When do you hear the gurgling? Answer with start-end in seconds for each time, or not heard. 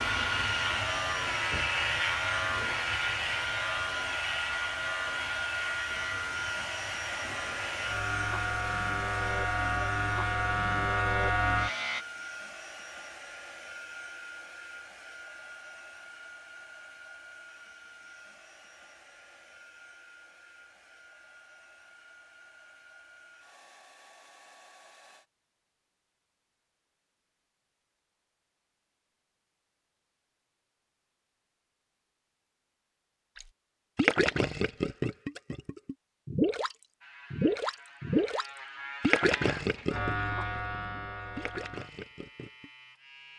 33.4-42.7.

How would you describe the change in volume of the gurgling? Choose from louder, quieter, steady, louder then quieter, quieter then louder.
quieter.